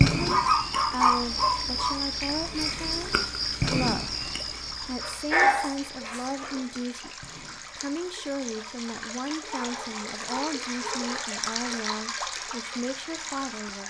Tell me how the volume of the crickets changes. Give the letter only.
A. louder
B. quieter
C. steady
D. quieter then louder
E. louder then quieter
B.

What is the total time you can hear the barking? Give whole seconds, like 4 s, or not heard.
5 s.